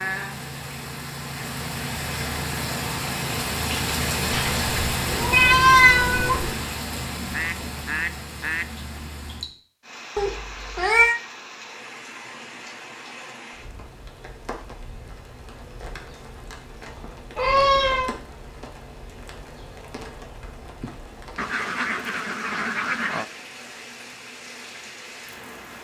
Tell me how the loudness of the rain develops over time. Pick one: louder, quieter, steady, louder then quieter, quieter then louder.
quieter.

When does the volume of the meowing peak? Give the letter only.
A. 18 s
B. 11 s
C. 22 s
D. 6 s
D.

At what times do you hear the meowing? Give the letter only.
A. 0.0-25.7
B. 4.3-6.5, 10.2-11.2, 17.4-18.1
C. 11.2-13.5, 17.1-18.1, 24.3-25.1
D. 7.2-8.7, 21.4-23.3
B.